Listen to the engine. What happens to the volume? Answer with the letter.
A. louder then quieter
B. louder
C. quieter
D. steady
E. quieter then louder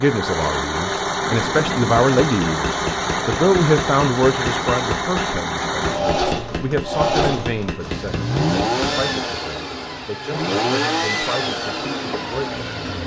D.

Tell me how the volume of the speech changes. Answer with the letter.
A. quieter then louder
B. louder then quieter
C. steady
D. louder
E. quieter
E.